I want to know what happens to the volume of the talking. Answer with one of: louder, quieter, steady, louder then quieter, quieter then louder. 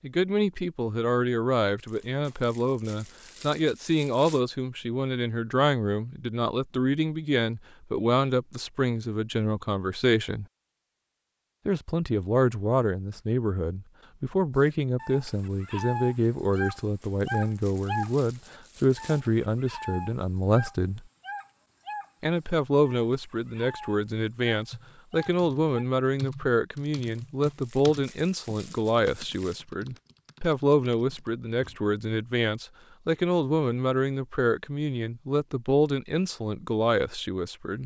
steady.